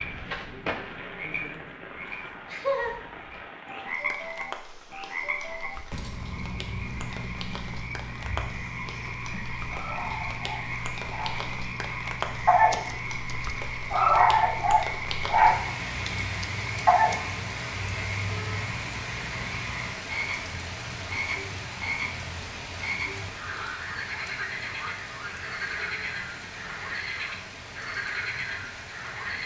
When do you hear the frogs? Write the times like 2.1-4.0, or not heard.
0.0-29.4.